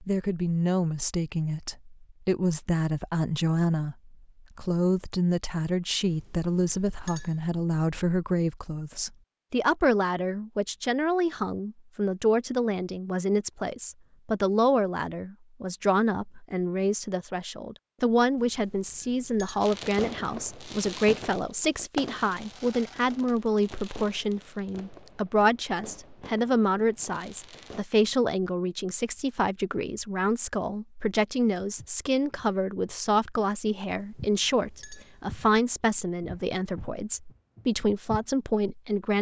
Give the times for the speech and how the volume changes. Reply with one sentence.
The speech can be heard from 0.0 to 39.1 s, at a steady volume.